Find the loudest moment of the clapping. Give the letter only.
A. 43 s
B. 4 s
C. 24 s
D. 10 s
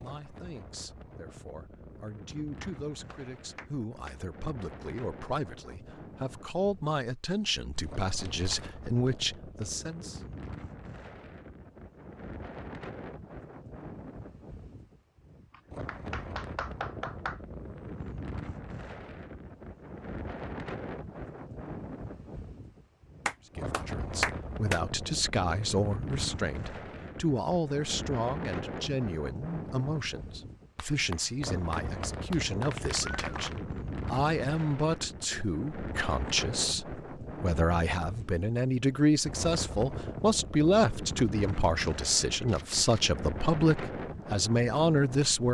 C.